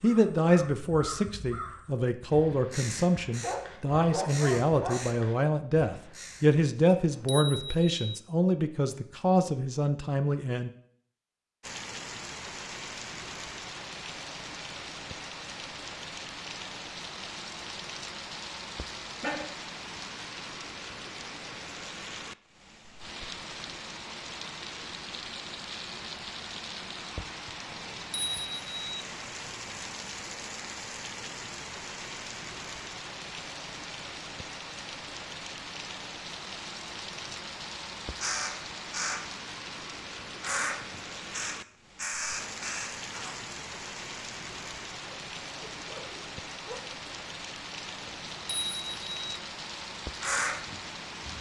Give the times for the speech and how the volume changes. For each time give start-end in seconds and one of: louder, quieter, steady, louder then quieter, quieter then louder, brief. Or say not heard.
0.0-10.7 steady.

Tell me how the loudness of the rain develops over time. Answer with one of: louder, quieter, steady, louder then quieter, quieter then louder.
steady.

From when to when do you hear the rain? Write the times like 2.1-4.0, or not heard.
11.6-51.3.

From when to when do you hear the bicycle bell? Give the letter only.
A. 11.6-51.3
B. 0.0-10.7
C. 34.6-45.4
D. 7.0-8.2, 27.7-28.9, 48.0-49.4
D.